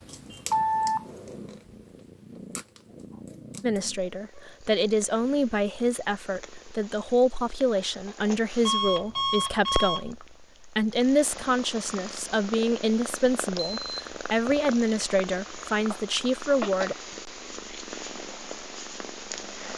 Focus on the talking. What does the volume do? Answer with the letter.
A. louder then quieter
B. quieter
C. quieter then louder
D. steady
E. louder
D.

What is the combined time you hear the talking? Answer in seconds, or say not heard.
13 s.